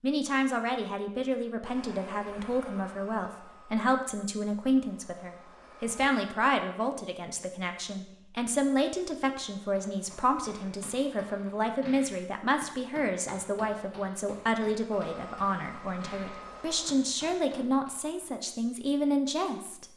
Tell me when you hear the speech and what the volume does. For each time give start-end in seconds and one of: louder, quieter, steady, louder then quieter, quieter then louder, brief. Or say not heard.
0.0-19.9 steady.